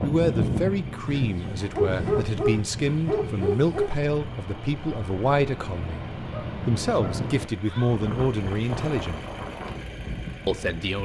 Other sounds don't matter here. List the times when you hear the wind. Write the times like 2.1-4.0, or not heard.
0.0-10.8.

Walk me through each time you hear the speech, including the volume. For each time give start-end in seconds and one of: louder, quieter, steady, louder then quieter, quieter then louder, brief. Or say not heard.
0.0-9.2 steady
10.4-11.0 brief.